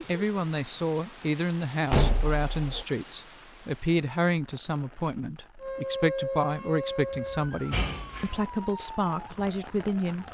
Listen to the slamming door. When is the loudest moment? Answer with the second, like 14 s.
2 s.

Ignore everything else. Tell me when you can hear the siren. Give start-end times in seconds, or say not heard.
5.6-10.2.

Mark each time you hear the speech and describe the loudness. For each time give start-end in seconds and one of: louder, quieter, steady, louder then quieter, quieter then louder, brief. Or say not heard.
0.1-10.2 steady.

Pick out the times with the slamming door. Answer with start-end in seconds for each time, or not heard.
1.9-2.9, 7.1-8.4.